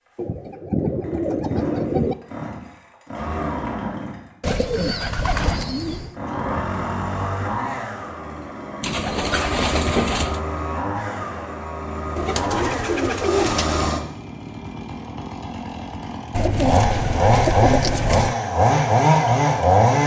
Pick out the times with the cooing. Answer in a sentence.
The cooing can be heard from 0.1 to 2.1 s, from 4.4 to 6.2 s, from 8.8 to 10.4 s, from 12.2 to 13.9 s and from 16.3 to 18.4 s.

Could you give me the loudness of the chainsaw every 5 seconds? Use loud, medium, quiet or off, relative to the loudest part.
quiet, medium, medium, loud.